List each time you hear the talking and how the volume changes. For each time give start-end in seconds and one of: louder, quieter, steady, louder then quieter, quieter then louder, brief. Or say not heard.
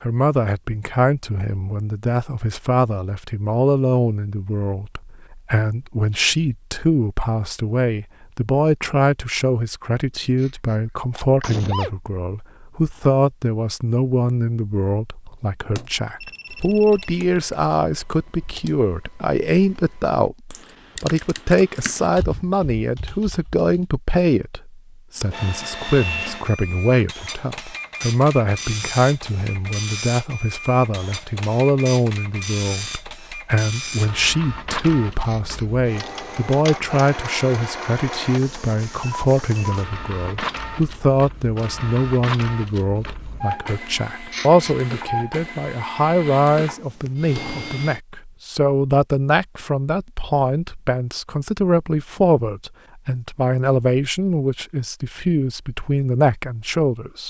0.0-57.2 steady.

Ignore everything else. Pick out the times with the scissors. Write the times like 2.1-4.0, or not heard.
not heard.